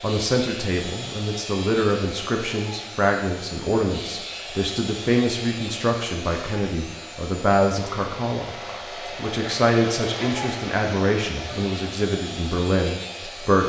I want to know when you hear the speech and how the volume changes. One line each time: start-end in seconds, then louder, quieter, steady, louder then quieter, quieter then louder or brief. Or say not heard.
0.0-13.6 steady.